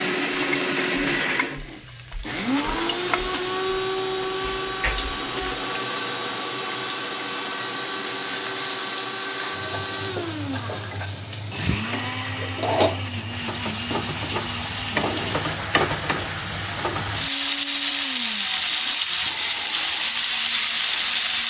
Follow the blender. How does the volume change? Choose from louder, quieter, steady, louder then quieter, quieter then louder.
quieter.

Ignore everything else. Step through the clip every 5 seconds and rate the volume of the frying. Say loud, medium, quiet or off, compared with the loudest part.
quiet, medium, medium, loud, loud.